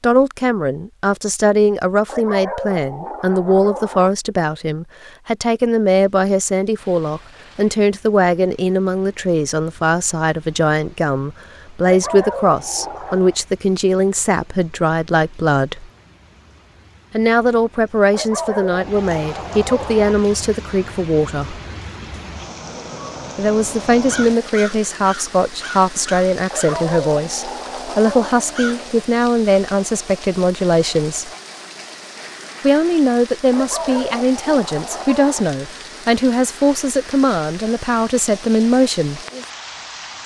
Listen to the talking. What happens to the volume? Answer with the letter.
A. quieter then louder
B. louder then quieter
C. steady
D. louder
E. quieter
C.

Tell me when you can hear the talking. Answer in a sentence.
You can hear the talking from 0.0 to 15.9 s, from 17.1 to 21.6 s, from 23.4 to 31.3 s and from 32.6 to 39.2 s.